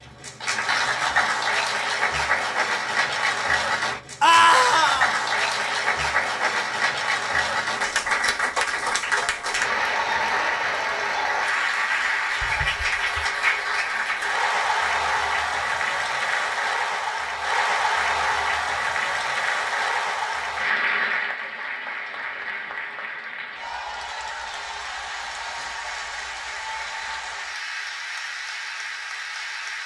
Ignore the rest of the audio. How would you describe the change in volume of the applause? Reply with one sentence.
The volume of the applause goes down.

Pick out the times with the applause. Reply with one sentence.
You can hear the applause from 0.0 to 29.8 s.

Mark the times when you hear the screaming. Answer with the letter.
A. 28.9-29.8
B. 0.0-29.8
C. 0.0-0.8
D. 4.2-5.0
D.